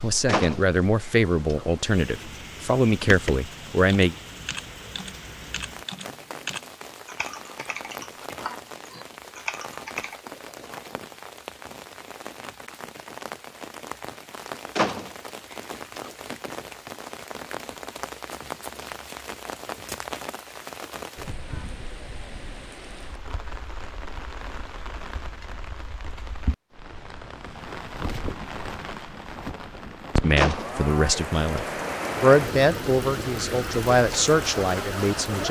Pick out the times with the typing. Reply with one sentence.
You can hear the typing from 3.0 to 10.2 s.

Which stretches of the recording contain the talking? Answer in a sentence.
You can hear the talking from 0.0 to 4.2 s and from 30.1 to 35.4 s.